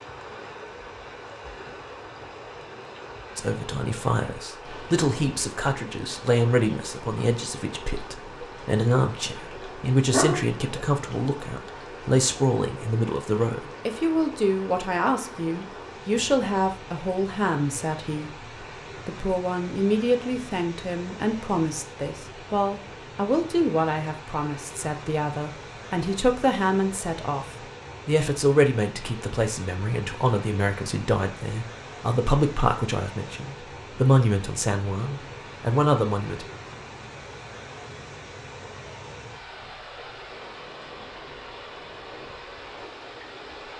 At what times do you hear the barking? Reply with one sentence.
The barking can be heard from 9.6 to 10.8 s.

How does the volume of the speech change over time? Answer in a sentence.
The volume of the speech stays about the same.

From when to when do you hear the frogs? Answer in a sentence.
The frogs can't be heard in this clip.